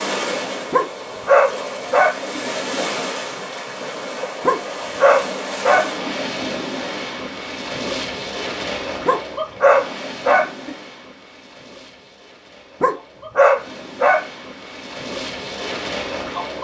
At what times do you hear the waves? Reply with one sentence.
The waves can be heard from 0.0 to 16.5 s.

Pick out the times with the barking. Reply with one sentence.
You can hear the barking from 0.7 to 2.4 s, from 4.4 to 6.1 s, from 9.1 to 10.8 s and from 12.8 to 14.2 s.